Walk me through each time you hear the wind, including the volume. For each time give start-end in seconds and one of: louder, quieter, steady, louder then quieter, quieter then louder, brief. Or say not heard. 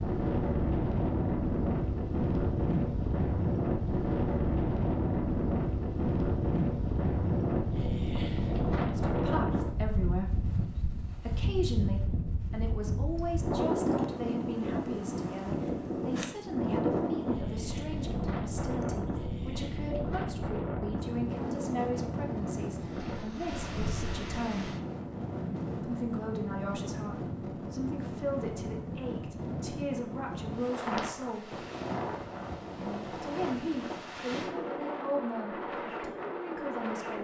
0.0-37.1 quieter.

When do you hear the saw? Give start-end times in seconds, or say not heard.
not heard.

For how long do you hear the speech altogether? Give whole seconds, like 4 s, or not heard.
25 s.